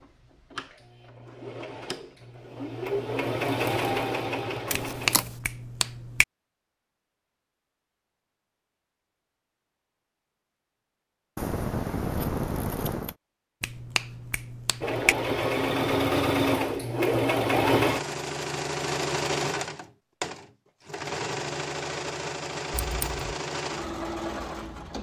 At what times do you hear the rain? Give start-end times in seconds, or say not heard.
not heard.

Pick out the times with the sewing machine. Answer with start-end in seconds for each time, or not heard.
0.0-5.2, 14.8-24.9.